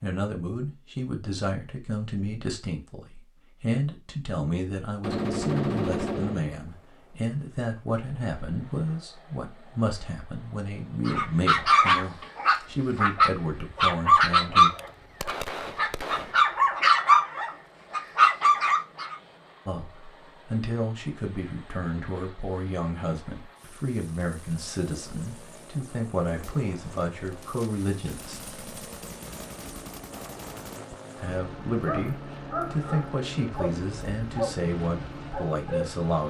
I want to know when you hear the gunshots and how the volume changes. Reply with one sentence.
You can hear the gunshots briefly from 5.0 to 6.5 s; briefly from 14.6 to 16.4 s; and from 26.4 to 30.8 s, getting louder.